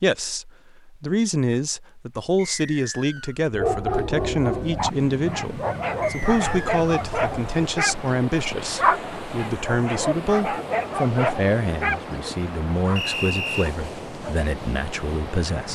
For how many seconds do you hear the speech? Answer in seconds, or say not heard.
16 s.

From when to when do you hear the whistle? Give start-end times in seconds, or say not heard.
2.4-3.5, 6.0-6.8, 12.9-13.7.